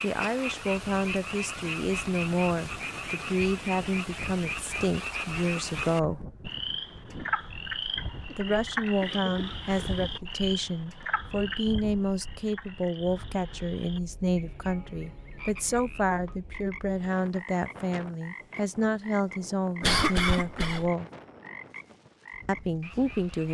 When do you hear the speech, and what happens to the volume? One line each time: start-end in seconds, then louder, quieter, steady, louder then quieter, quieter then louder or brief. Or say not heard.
0.0-6.2 steady
8.3-21.1 steady
22.4-23.4 brief.